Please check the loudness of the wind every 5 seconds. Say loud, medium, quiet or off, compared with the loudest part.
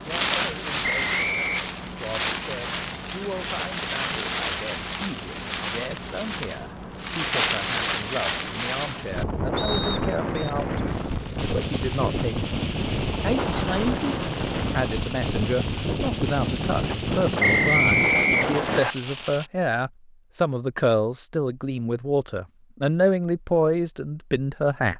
loud, loud, loud, loud, off.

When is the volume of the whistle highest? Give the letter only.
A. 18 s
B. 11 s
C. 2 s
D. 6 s
A.